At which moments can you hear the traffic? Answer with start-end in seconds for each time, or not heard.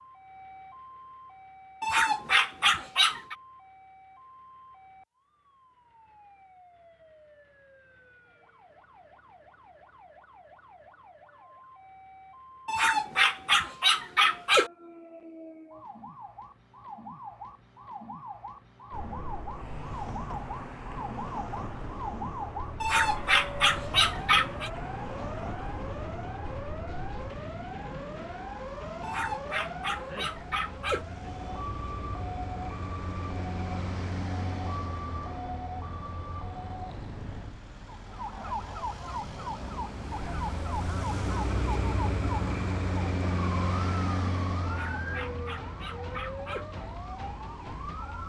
18.9-48.2.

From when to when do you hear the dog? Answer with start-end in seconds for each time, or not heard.
1.8-3.4, 12.7-14.7, 22.8-24.7, 29.0-31.1, 44.6-46.6.